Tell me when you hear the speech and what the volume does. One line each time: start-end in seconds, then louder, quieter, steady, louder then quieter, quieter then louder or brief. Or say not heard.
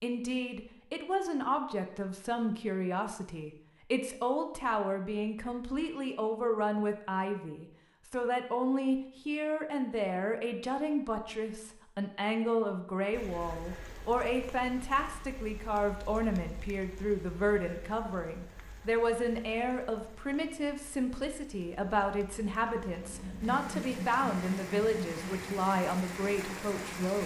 0.0-27.2 steady.